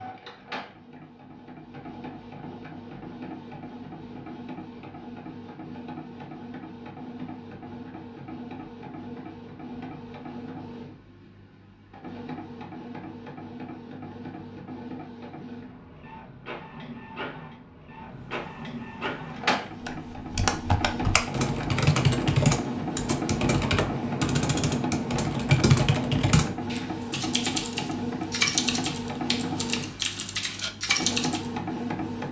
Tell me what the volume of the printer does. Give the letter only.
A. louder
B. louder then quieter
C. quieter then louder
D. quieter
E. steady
A.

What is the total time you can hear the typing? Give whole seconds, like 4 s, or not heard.
12 s.